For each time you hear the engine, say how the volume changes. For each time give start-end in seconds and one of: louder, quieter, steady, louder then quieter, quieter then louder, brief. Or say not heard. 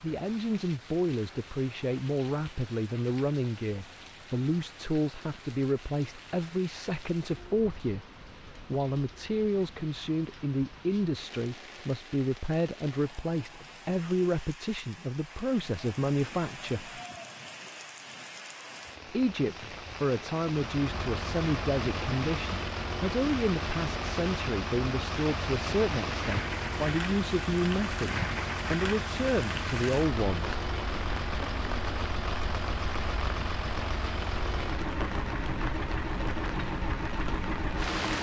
20.4-38.1 steady.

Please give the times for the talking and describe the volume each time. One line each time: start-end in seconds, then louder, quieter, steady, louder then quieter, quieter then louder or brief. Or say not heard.
0.0-17.0 steady
19.1-30.6 steady.